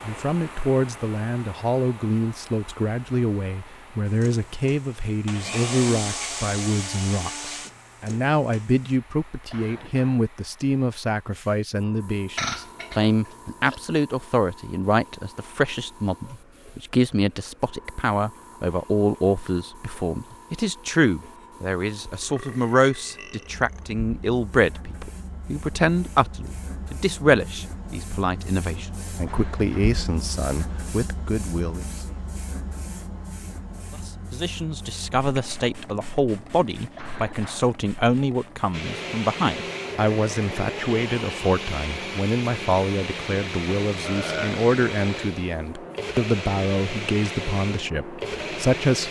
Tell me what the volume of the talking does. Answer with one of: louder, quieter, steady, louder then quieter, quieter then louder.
steady.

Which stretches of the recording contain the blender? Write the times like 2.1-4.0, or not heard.
4.0-8.9, 38.7-49.0.